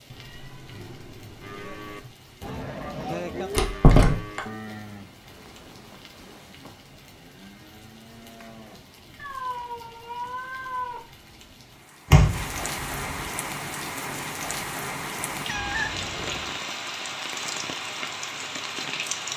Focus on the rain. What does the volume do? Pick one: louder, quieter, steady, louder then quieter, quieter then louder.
louder.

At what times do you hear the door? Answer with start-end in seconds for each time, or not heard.
3.5-4.4, 12.1-13.3.